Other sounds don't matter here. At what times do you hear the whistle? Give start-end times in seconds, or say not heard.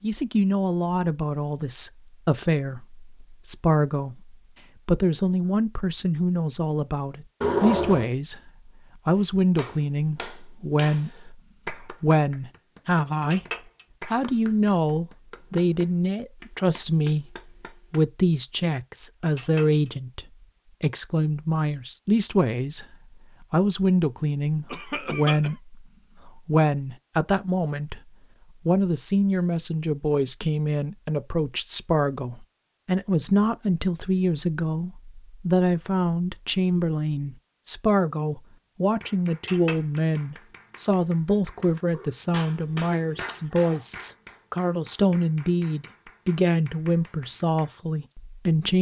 not heard.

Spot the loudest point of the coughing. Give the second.
8 s.